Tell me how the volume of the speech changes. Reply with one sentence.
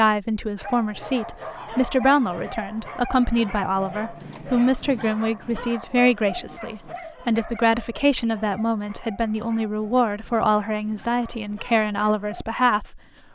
The volume of the speech stays about the same.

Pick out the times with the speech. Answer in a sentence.
You can hear the speech from 0.0 to 13.0 s.